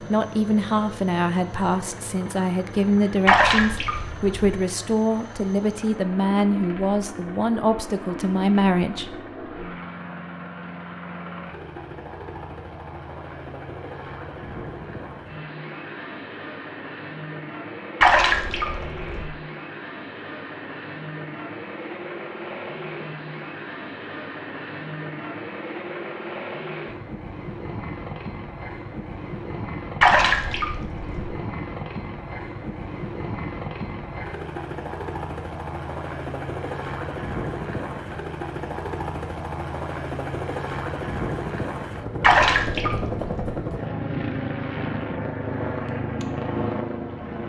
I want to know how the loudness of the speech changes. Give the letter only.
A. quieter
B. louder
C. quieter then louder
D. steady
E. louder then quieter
D.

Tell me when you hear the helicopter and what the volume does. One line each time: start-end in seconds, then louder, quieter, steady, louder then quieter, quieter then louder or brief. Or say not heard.
0.0-47.4 louder.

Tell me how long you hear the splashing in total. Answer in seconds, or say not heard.
5 s.